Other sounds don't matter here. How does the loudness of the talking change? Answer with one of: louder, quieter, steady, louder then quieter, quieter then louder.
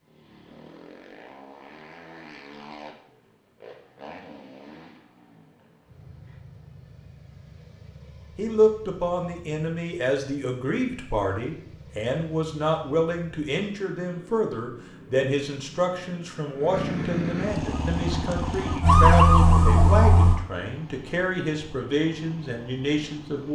steady.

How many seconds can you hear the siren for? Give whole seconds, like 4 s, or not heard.
3 s.